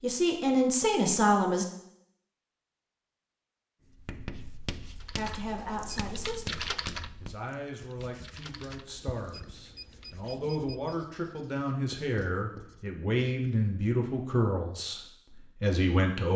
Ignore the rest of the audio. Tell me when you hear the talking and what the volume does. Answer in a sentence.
The talking can be heard briefly from 0.0 to 1.6 s; and from 5.2 to 16.3 s, getting louder.